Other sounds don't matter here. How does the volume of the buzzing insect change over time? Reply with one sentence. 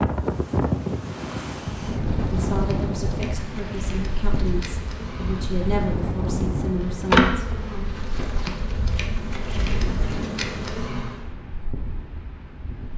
The loudness of the buzzing insect goes up, then down.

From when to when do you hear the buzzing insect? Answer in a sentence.
You can hear the buzzing insect from 1.9 to 11.3 s.